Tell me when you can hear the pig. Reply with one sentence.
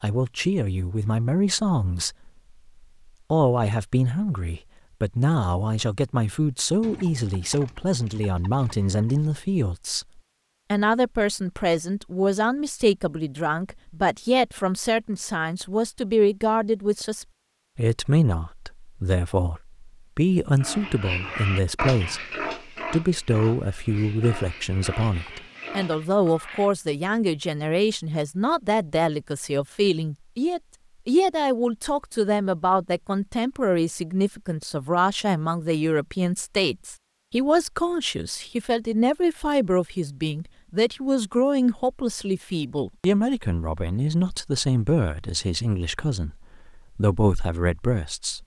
The pig can be heard from 20.6 to 26.1 s.